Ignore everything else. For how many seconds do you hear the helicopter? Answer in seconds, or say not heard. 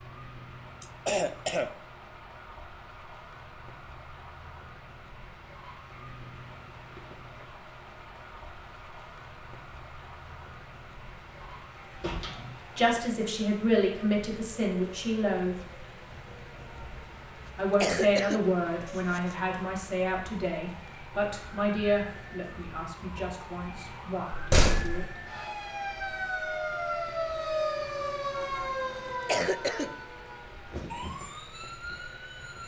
not heard.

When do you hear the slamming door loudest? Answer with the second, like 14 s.
25 s.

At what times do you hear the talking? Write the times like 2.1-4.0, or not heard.
12.8-15.6, 17.6-25.2.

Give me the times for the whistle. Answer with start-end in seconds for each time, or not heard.
not heard.